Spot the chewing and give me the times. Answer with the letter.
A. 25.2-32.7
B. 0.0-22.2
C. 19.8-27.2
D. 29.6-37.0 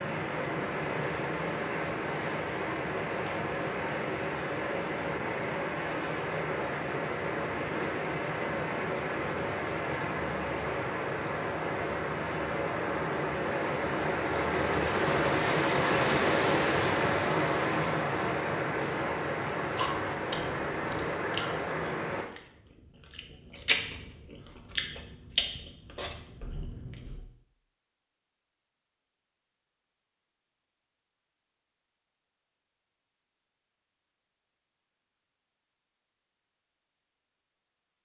C.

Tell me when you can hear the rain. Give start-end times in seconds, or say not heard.
0.0-22.2.